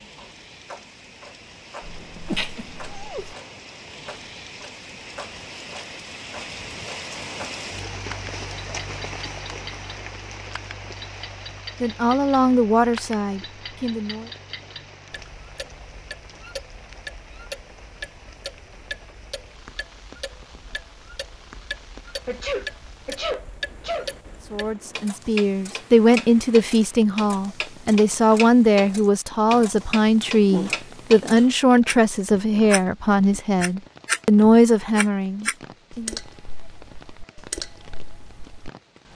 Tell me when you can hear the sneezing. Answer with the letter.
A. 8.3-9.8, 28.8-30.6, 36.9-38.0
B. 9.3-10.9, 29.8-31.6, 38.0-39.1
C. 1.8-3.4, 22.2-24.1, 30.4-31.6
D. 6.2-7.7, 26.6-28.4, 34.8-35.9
C.